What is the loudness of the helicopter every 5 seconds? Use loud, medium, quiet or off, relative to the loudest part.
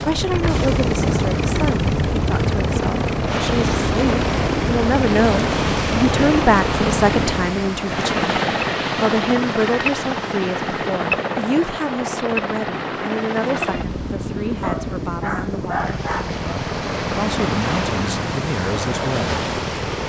loud, loud, loud, medium.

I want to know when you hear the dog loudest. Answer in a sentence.
The volume of the dog peaks at 16 seconds.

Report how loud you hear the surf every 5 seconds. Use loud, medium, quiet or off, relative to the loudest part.
loud, loud, medium, loud.